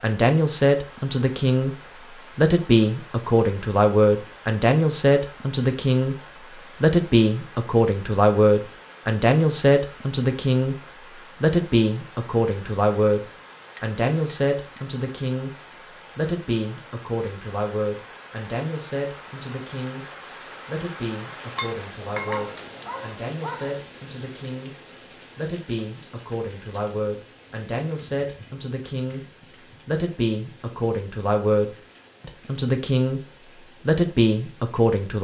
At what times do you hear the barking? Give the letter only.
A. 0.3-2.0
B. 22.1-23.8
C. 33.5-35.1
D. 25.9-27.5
B.